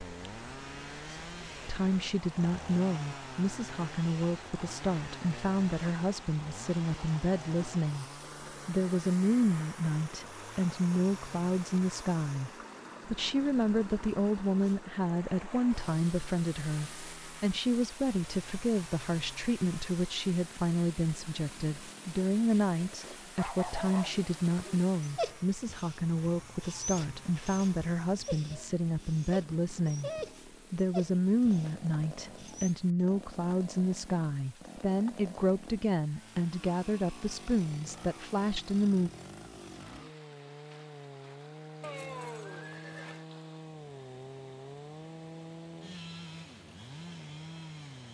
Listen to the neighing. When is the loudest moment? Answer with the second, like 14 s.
42 s.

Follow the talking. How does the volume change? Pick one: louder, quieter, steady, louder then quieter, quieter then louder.
steady.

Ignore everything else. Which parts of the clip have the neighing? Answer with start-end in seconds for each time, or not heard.
41.8-43.2.